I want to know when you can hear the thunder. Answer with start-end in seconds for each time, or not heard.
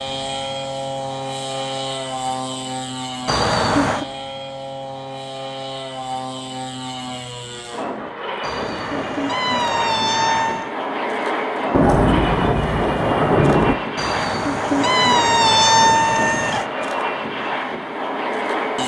11.7-13.8.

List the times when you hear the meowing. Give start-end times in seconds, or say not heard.
3.2-4.0, 8.4-10.7, 13.9-16.6.